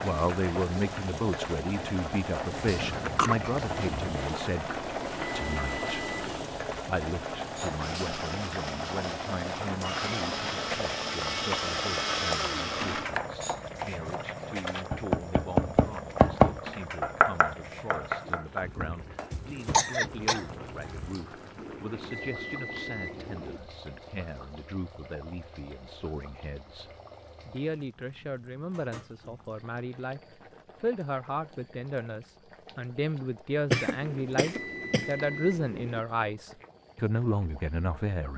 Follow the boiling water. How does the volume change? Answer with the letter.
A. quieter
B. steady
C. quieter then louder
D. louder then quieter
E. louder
A.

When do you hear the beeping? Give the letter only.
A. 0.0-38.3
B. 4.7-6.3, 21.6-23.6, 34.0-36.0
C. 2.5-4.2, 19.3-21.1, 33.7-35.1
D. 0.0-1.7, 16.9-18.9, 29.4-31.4
B.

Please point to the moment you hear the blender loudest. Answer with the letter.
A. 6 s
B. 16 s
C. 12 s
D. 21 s
C.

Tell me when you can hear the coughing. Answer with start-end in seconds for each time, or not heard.
2.5-4.2, 19.3-21.1, 33.7-35.1.